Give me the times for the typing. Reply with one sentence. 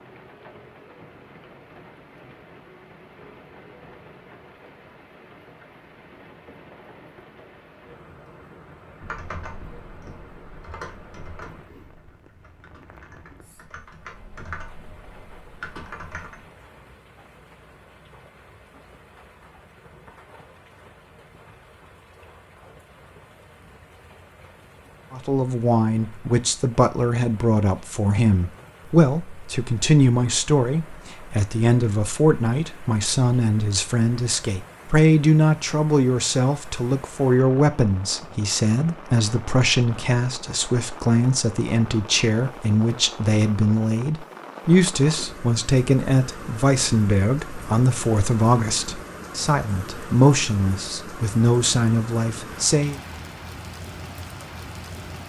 You can hear the typing from 9.0 to 16.6 s.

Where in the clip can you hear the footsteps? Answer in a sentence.
The footsteps can't be heard in this clip.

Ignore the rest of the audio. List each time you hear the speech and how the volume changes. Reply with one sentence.
You can hear the speech from 25.1 to 53.0 s, at a steady volume.